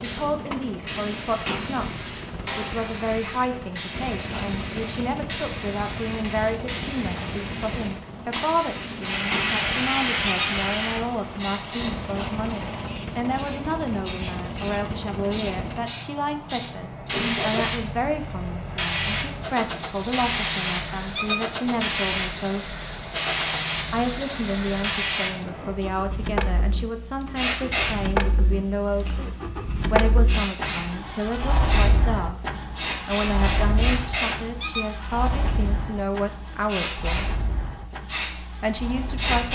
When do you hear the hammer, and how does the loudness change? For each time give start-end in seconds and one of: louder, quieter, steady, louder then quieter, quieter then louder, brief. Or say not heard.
not heard.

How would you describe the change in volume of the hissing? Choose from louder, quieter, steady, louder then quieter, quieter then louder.
steady.